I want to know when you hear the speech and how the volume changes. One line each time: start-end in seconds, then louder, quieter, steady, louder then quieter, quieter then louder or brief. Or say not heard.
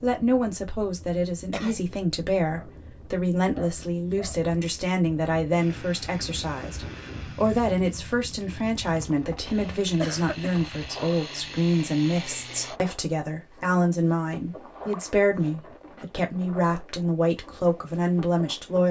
0.0-18.8 steady.